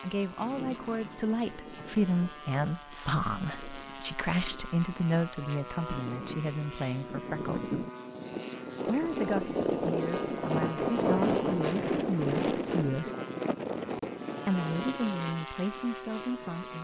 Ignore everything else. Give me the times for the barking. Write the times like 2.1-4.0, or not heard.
not heard.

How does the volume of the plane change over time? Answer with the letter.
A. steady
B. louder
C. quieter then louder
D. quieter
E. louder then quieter
E.